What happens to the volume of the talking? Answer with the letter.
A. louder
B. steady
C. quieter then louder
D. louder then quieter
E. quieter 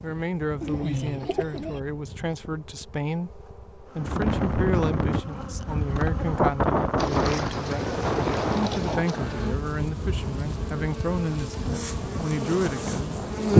B.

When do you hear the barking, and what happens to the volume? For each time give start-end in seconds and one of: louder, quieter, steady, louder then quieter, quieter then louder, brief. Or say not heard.
not heard.